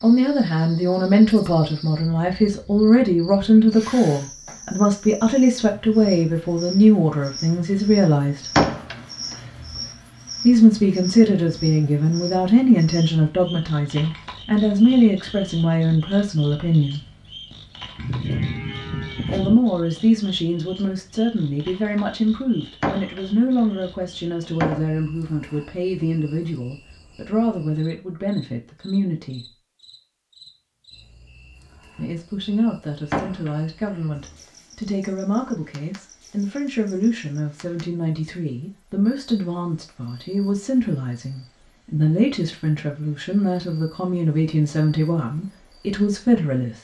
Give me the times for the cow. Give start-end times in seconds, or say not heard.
17.9-19.6.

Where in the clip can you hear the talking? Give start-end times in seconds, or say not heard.
0.0-8.6, 10.4-17.1, 19.2-29.5, 31.9-46.7.